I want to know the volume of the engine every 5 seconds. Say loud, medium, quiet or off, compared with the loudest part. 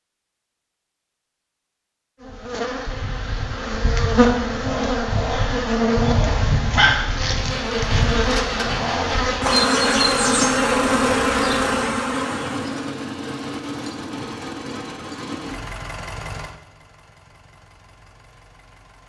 off, loud, loud, medium.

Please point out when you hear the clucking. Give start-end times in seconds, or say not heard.
not heard.